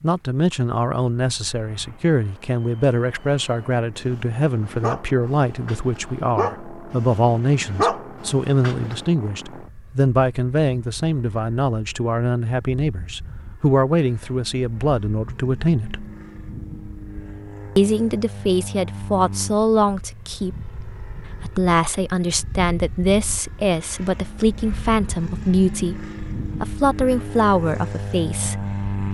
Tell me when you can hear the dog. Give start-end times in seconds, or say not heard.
3.3-9.0.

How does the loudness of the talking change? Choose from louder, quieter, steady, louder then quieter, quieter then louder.
steady.